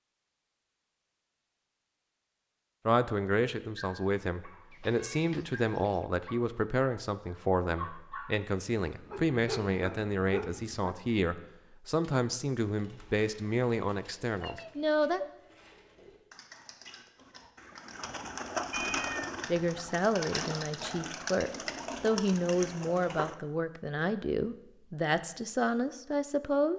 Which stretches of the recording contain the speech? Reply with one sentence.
The speech can be heard from 2.9 to 15.2 s and from 19.4 to 26.7 s.